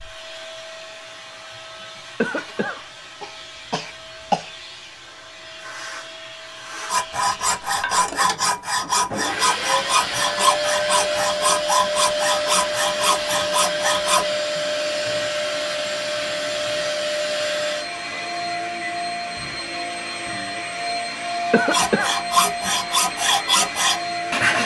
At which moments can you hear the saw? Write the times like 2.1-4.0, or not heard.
6.8-14.2, 21.7-24.6.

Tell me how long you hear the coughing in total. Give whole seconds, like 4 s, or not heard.
3 s.